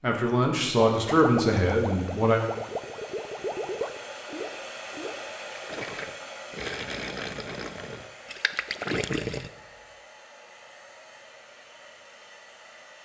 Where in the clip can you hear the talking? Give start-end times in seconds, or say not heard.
0.0-2.4.